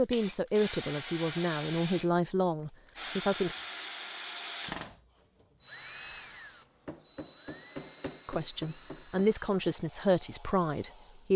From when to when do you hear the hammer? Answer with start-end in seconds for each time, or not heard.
6.8-9.2.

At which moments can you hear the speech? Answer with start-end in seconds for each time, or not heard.
0.0-3.5, 8.2-11.3.